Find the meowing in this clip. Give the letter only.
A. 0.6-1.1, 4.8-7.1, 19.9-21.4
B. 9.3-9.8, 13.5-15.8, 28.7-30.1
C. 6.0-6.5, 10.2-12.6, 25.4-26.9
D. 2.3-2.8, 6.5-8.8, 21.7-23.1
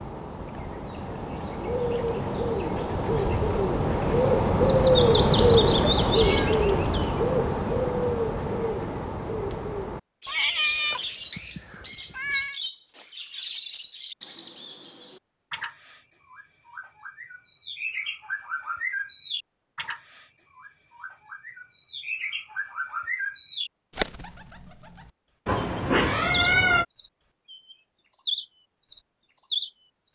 C.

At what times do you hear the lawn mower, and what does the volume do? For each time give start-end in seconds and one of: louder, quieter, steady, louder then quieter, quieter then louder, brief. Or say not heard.
not heard.